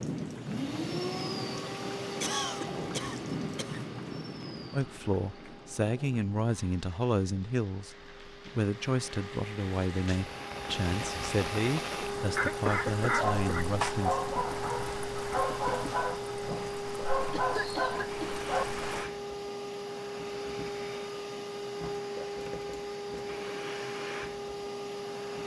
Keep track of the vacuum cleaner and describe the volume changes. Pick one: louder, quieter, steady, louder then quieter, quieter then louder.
quieter then louder.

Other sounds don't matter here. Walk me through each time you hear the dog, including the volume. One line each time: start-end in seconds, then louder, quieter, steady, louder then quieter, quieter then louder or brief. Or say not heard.
13.2-18.9 steady.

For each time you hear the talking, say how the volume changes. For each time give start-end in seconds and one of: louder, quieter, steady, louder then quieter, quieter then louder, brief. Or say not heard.
4.7-14.2 steady.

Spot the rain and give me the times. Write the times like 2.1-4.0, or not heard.
0.0-19.1.